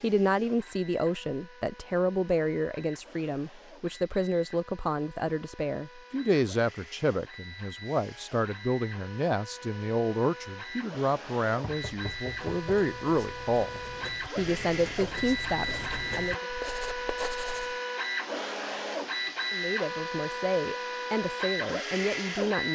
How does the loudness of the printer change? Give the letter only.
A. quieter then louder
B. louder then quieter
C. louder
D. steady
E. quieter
C.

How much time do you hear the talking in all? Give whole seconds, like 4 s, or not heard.
20 s.